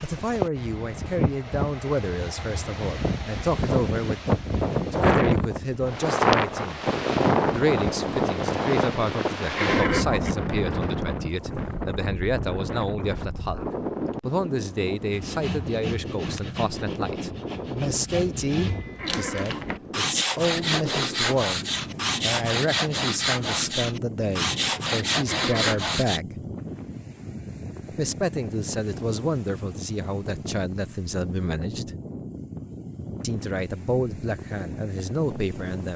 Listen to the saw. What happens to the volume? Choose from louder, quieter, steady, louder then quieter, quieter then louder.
louder.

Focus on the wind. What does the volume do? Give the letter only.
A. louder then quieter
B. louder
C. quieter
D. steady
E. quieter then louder
C.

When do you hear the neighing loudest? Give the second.
10 s.